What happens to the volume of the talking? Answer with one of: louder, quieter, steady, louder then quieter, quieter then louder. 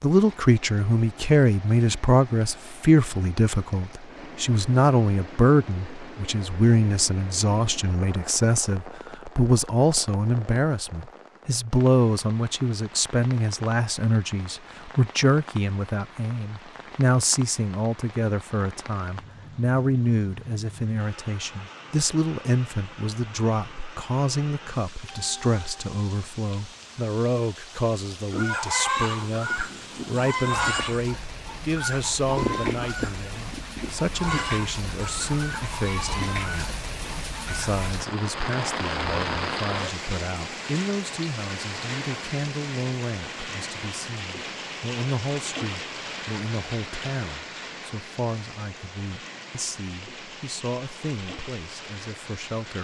quieter.